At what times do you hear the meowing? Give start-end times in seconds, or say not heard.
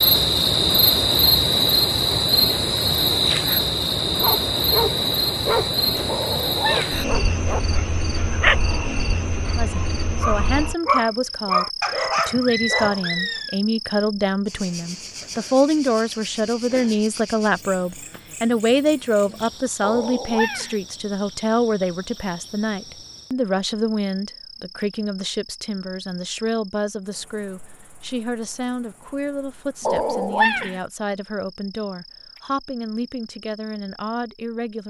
6.0-7.0, 19.8-20.8, 29.9-30.8.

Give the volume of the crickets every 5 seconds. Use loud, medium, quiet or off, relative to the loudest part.
loud, medium, quiet, quiet, quiet, quiet, quiet.